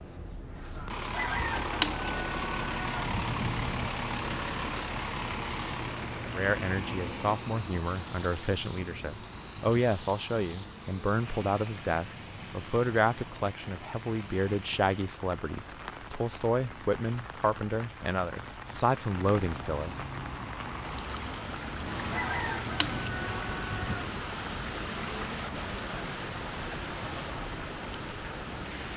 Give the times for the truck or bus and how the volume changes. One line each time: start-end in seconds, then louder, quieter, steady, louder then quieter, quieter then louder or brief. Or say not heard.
0.0-28.9 quieter then louder.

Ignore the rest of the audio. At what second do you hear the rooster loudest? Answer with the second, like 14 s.
2 s.